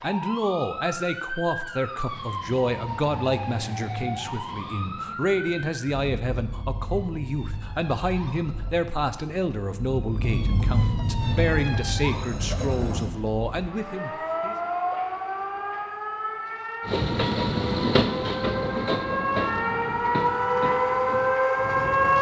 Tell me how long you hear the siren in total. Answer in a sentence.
You can hear the siren for 22 seconds altogether.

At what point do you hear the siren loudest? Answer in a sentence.
The loudest moment of the siren is at 22 seconds.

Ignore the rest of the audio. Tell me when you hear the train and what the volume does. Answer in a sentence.
You can hear the train briefly from 11.2 to 13.1 s; and from 16.9 to 22.1 s, getting quieter.